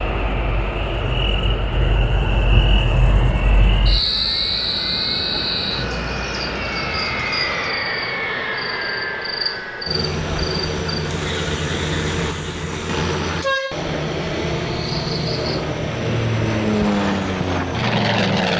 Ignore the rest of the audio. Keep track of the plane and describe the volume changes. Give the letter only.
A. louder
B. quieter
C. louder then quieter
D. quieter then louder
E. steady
A.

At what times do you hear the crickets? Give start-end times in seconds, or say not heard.
0.0-15.6.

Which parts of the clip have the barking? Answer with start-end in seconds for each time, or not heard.
not heard.